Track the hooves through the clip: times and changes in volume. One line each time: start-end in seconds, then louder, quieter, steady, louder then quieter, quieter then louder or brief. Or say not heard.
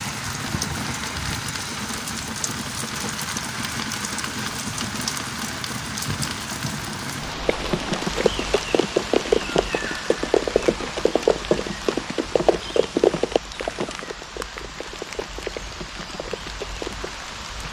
7.5-17.1 quieter.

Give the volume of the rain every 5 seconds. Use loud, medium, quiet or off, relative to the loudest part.
loud, loud, medium, medium.